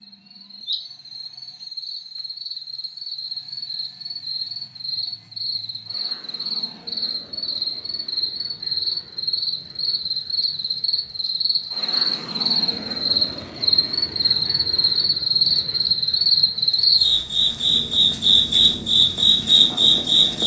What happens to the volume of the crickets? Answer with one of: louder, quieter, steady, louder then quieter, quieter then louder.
louder.